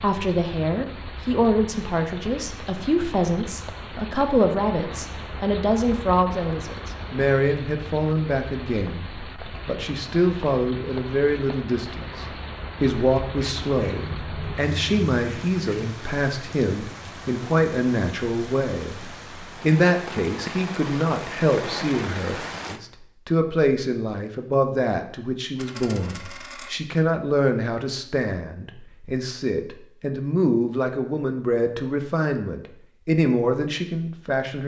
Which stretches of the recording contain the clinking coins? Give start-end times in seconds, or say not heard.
25.6-26.7.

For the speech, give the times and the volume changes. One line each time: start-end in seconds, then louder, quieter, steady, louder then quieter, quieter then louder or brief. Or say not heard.
0.0-34.6 steady.